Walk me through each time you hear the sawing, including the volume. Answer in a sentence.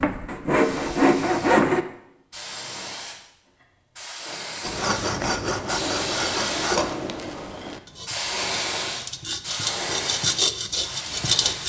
The sawing can be heard briefly from 0.0 to 1.9 s; and from 4.6 to 11.6 s, getting quieter then louder.